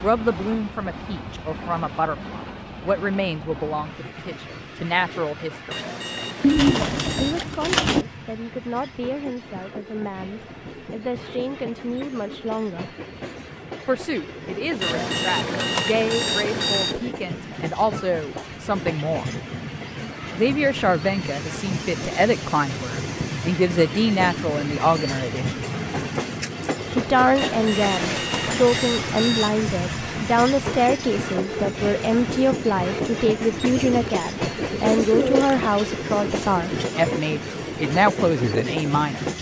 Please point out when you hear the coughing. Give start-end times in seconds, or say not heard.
not heard.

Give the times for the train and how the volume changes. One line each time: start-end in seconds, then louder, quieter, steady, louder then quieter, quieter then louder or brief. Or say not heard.
0.0-39.3 louder.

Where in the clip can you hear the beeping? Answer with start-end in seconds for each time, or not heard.
5.7-7.5, 14.8-17.1, 27.4-29.7.